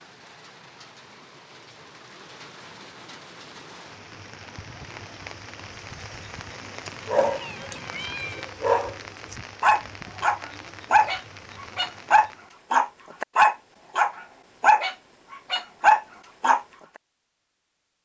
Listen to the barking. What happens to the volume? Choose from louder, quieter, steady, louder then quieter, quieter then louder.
louder.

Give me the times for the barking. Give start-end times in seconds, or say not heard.
7.0-16.6.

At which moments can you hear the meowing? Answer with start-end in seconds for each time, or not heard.
7.1-8.5.